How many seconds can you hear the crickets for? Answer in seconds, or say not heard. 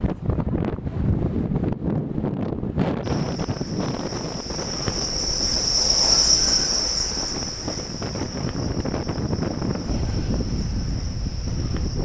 9 s.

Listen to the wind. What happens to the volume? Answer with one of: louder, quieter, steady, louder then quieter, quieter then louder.
quieter then louder.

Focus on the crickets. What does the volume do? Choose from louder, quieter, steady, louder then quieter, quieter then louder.
louder then quieter.